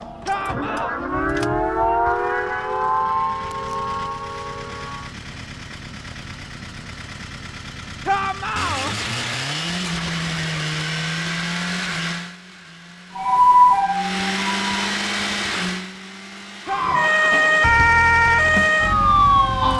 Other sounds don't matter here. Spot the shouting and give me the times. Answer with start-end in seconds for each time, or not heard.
0.2-1.0, 8.1-8.9, 16.6-17.6.